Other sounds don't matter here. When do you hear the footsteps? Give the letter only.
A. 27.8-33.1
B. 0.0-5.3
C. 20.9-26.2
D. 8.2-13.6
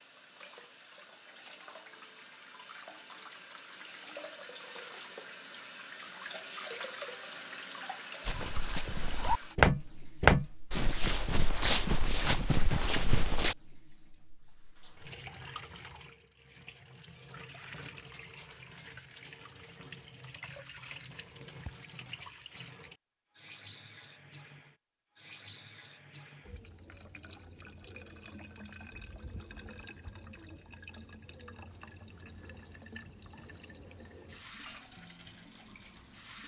D.